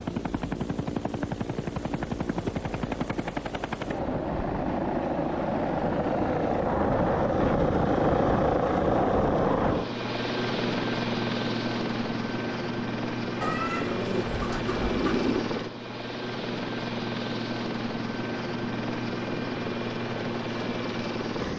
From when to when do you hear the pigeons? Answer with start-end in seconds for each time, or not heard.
13.4-15.4.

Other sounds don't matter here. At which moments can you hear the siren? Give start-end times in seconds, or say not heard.
not heard.